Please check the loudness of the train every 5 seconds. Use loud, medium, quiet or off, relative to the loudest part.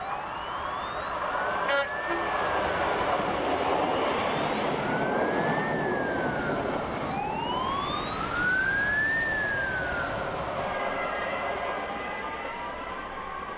loud, loud, medium.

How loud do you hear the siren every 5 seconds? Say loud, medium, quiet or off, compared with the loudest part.
medium, loud, medium.